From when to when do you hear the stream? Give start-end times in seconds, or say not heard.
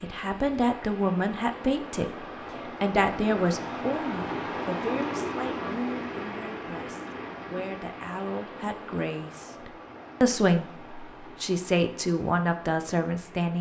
0.0-13.5.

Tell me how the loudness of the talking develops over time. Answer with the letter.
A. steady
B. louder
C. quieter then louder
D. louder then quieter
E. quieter
C.